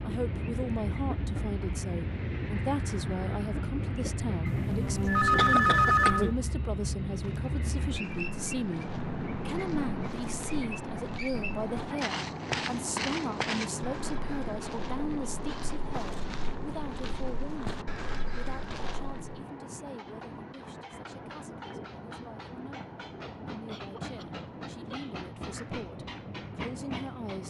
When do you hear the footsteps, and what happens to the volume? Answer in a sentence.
You can hear the footsteps from 7.2 to 19.4 s, getting louder then quieter.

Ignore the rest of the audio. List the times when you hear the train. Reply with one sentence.
The train can be heard from 0.0 to 27.4 s.